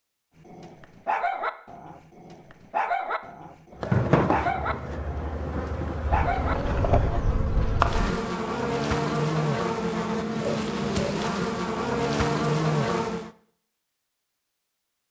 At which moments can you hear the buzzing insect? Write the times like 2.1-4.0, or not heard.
3.8-13.3.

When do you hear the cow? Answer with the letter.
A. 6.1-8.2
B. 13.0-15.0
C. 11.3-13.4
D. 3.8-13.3
A.